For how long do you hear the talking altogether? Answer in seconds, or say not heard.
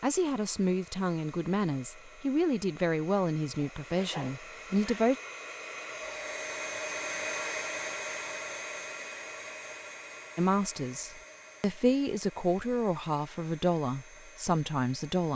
10 s.